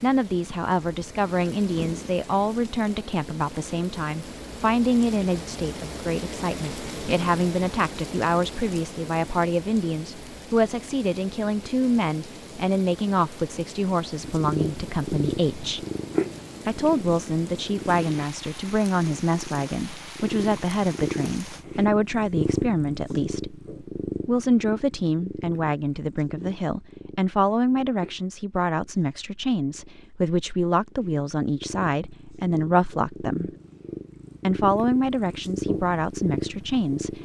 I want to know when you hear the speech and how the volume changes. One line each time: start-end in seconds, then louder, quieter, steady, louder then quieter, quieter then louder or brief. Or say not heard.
0.0-15.8 steady
16.6-33.5 steady
34.4-37.2 brief.